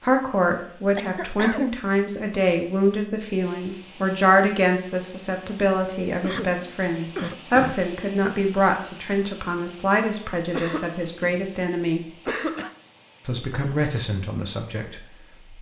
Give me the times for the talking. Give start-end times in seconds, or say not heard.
0.0-12.1, 13.2-15.5.